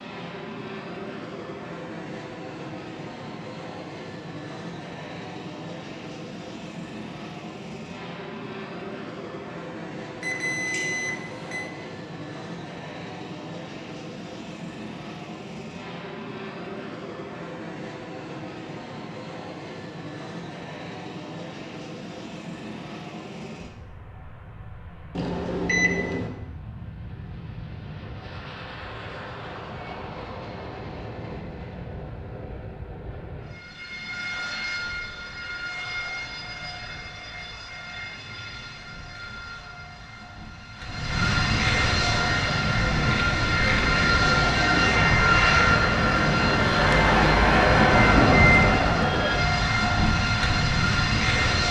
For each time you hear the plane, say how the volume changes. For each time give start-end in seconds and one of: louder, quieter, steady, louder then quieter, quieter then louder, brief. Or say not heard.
0.0-51.6 louder.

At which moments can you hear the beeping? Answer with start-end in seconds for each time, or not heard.
10.2-11.7, 25.1-26.3, 47.9-48.8.